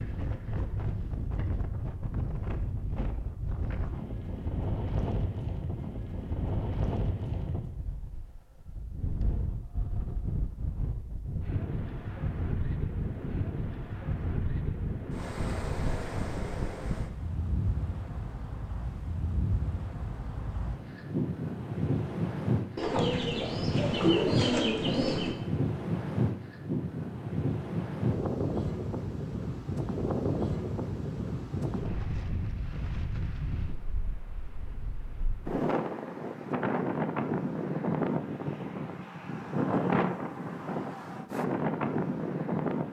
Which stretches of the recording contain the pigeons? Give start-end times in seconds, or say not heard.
22.8-25.4.